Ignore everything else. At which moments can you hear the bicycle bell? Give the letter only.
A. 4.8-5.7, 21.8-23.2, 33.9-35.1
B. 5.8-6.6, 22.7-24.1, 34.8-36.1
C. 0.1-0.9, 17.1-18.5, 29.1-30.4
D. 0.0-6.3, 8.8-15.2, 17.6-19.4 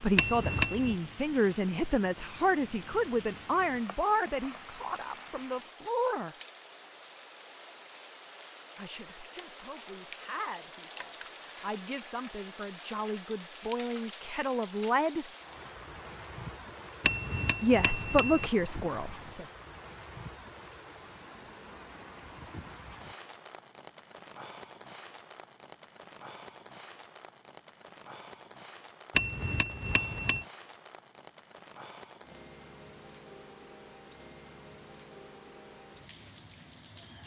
C.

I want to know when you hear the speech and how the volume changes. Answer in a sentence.
You can hear the speech from 0.0 to 6.3 s, getting quieter; from 8.8 to 15.2 s, getting louder; and briefly from 17.6 to 19.4 s.